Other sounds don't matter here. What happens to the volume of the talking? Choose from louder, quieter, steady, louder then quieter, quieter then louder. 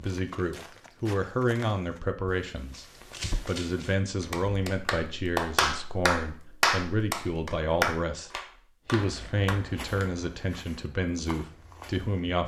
steady.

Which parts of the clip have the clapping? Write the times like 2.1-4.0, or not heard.
4.2-10.1.